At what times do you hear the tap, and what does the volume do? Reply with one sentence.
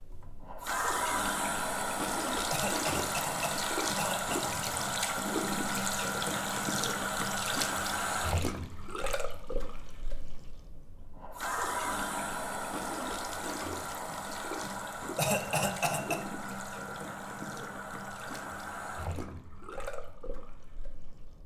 The tap can be heard from 0.0 to 21.4 s, getting quieter.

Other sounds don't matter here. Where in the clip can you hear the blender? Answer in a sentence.
The blender can't be heard in this clip.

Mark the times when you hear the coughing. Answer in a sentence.
The coughing can be heard from 2.5 to 4.5 s and from 15.2 to 16.2 s.